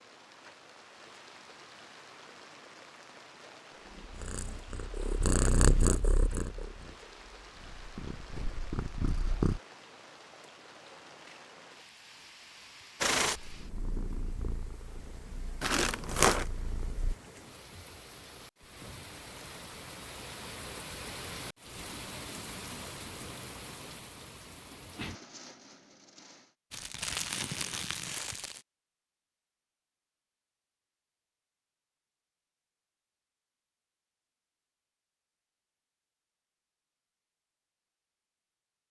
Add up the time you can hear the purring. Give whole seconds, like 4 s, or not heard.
10 s.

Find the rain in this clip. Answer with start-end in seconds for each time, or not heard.
0.0-26.6.